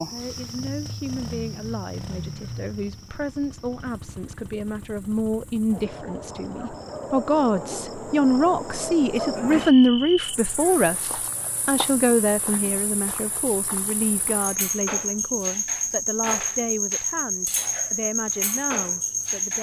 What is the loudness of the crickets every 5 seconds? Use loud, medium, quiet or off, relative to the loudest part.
quiet, medium, medium, loud.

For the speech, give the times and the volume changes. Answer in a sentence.
You can hear the speech from 0.1 to 19.5 s, getting louder then quieter.